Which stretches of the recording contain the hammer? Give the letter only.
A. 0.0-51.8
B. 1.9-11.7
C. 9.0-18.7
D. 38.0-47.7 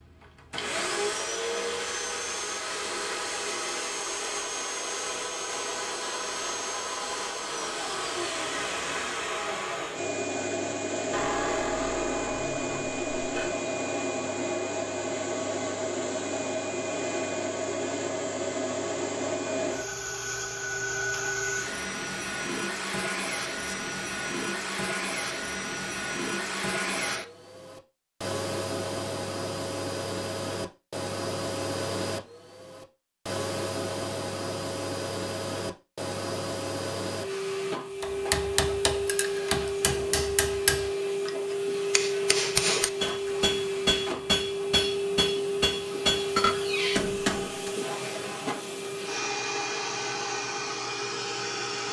D.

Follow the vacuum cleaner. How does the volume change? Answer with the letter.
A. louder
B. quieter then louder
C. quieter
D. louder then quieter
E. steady
E.